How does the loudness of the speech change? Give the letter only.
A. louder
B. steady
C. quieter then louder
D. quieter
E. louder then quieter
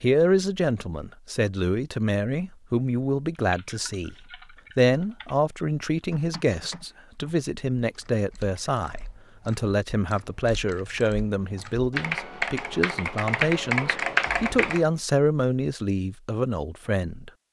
B.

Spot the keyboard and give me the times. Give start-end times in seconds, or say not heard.
3.4-14.8.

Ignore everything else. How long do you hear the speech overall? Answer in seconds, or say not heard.
17 s.